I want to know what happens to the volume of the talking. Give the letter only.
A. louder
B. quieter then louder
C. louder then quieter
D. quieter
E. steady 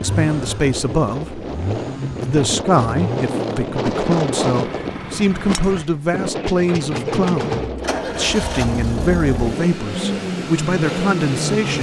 E.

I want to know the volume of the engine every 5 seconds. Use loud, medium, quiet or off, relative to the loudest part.
medium, loud, loud.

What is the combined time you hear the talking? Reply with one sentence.
You can hear the talking for 12 seconds altogether.